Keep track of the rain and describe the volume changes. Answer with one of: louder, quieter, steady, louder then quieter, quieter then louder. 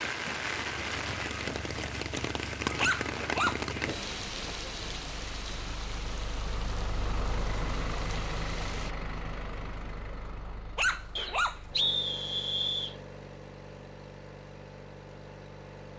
quieter.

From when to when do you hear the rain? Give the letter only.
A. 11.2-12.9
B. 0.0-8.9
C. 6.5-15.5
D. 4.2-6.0
B.